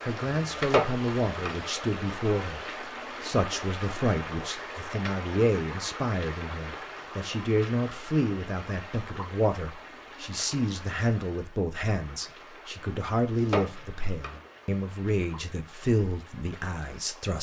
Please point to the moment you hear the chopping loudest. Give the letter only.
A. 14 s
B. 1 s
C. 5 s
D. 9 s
B.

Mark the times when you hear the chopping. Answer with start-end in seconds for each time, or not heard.
0.3-1.6, 13.2-14.4.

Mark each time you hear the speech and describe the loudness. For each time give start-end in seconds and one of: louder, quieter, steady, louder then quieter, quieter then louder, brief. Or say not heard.
0.0-17.3 steady.